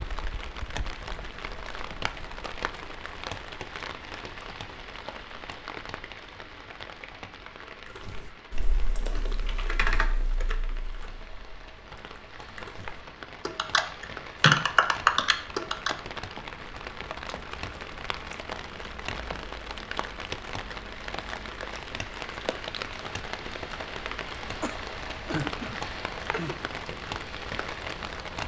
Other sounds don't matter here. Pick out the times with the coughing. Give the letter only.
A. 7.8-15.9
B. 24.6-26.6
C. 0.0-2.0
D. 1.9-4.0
B.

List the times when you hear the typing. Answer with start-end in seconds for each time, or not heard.
7.8-15.9.